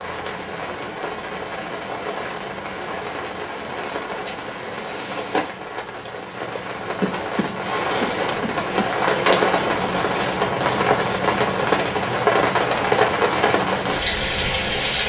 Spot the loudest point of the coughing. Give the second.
7 s.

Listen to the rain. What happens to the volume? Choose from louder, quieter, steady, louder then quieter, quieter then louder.
louder.